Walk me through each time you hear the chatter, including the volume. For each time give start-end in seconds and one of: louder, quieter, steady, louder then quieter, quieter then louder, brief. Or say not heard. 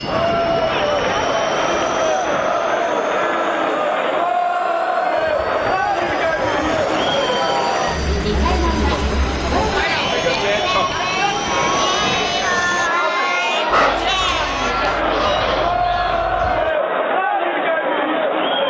0.0-18.6 steady.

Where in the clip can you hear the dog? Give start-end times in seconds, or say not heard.
13.7-16.6.